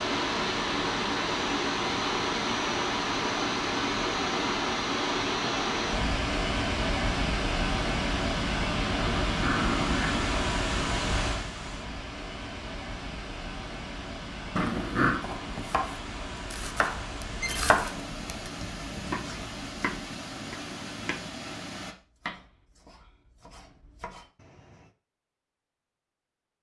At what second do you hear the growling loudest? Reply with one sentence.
The loudest moment of the growling is at 15 seconds.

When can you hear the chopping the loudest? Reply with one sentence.
The volume of the chopping peaks at 18 seconds.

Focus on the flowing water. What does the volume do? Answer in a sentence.
The volume of the flowing water goes down.